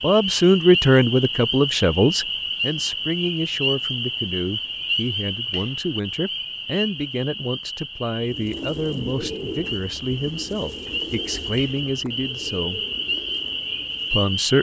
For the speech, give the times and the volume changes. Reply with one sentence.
The speech can be heard from 0.0 to 12.8 s, getting quieter; and briefly from 14.1 to 14.5 s.